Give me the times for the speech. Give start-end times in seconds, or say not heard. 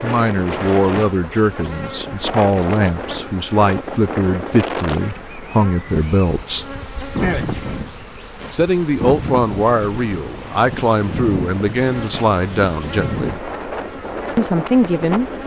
0.0-6.7, 8.5-13.4, 14.3-15.3.